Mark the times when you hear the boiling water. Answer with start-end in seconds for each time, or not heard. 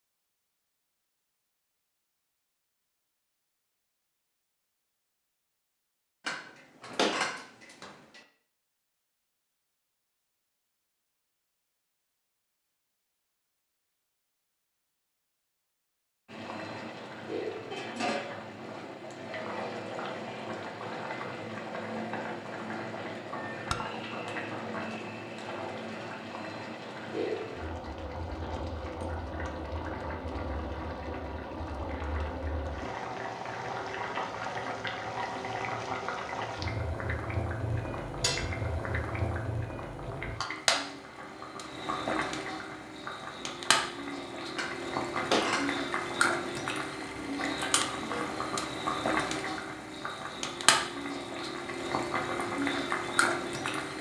16.2-53.9.